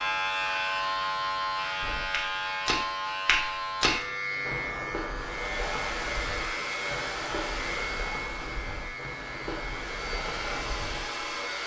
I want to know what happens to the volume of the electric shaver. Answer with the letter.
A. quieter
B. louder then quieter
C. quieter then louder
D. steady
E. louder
A.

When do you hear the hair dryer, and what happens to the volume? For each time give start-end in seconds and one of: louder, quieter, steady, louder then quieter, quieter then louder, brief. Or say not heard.
5.2-11.6 quieter then louder.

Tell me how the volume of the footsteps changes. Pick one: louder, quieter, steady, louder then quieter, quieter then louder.
quieter.